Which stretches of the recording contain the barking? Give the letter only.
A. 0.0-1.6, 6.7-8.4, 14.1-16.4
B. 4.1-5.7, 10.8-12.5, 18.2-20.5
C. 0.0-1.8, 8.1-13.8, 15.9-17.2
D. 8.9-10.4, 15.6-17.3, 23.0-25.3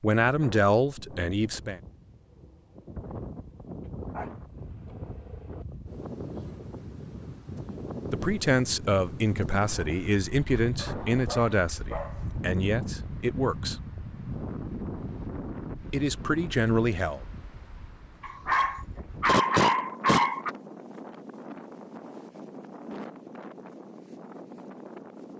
B.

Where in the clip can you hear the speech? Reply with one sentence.
The speech can be heard from 0.0 to 1.8 s, from 8.1 to 13.8 s and from 15.9 to 17.2 s.